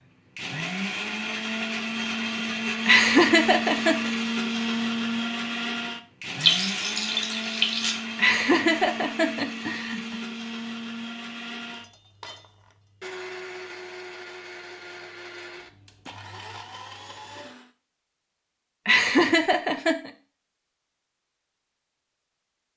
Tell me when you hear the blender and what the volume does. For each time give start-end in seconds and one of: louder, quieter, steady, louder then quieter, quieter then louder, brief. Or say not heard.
0.1-17.7 quieter.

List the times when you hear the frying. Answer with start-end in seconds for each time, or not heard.
6.4-8.0.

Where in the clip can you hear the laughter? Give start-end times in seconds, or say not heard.
2.9-4.1, 8.2-10.2, 18.9-20.1.